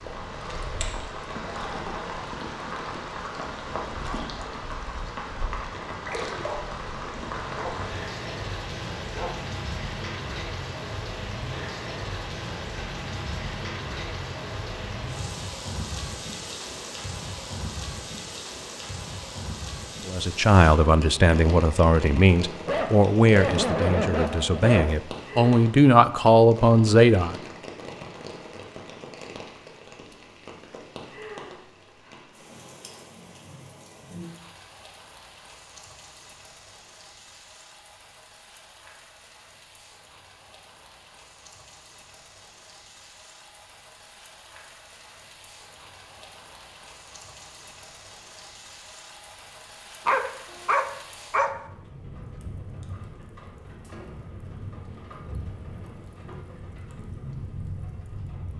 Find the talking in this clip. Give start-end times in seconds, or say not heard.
20.1-27.4.